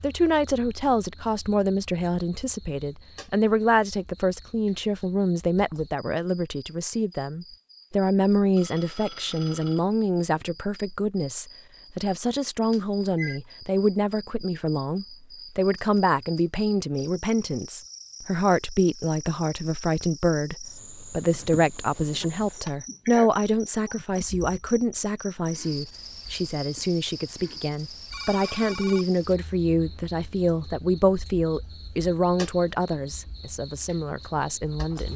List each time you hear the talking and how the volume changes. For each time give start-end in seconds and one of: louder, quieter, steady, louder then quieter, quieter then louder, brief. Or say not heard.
0.0-35.1 steady.